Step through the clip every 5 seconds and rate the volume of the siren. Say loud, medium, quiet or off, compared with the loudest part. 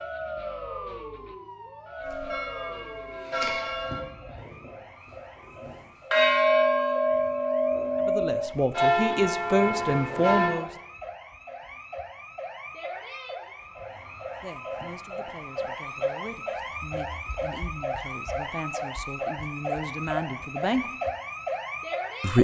medium, quiet, medium, loud, loud.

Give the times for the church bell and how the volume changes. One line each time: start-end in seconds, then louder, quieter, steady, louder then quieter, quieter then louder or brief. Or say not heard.
2.0-4.7 brief
5.6-10.6 quieter.